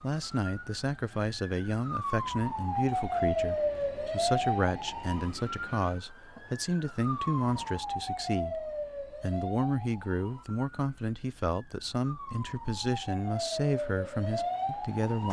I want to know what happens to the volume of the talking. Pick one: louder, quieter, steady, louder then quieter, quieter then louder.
steady.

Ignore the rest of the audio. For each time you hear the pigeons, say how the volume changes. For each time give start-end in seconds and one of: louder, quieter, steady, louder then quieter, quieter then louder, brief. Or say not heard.
not heard.